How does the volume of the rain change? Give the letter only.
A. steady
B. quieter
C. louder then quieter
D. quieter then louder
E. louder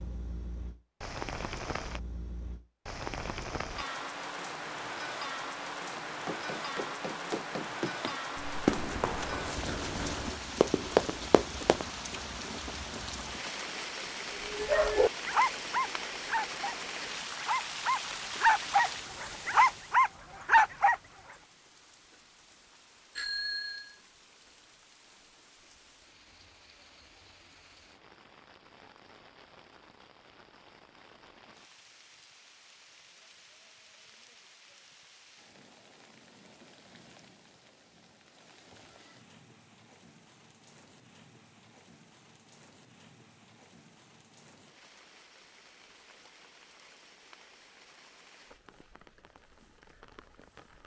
B.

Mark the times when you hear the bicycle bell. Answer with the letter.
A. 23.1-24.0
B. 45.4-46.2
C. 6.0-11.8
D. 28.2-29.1
A.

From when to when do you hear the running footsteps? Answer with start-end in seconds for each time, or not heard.
6.0-11.8.